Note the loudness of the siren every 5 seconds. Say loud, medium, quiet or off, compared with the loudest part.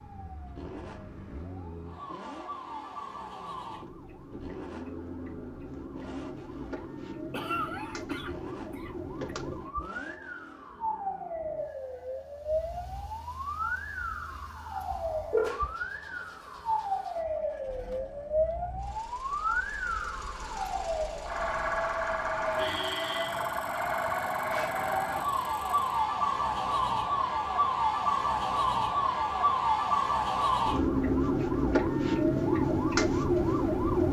quiet, quiet, medium, medium, medium, loud, loud.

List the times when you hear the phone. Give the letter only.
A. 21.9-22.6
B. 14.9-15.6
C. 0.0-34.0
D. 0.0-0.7
B.